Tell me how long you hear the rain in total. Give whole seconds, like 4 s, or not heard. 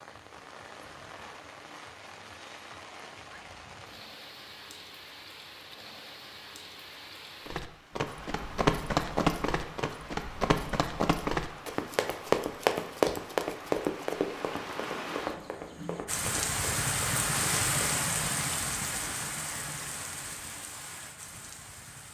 22 s.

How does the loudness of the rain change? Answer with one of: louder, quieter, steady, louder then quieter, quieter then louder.
louder.